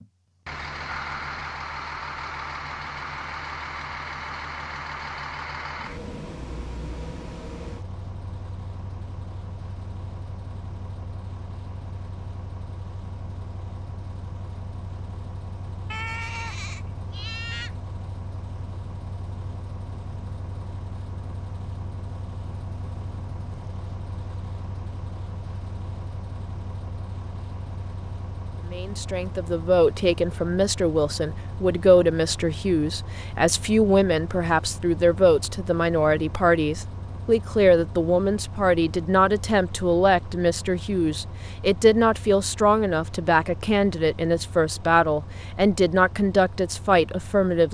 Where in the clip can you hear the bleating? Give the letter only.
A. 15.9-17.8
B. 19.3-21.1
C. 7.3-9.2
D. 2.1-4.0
A.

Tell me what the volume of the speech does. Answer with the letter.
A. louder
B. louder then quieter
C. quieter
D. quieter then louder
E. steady
E.